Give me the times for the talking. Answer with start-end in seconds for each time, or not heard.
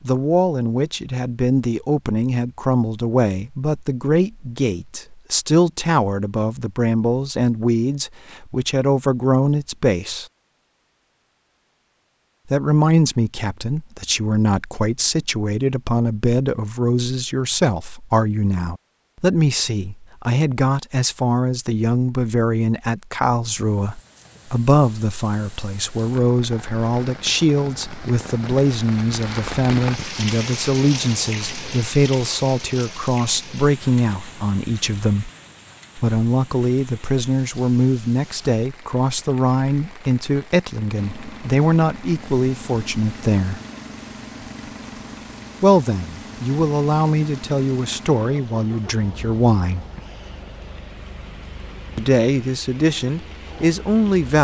0.0-10.2, 12.5-35.3, 36.0-43.6, 45.6-49.9, 52.0-54.3.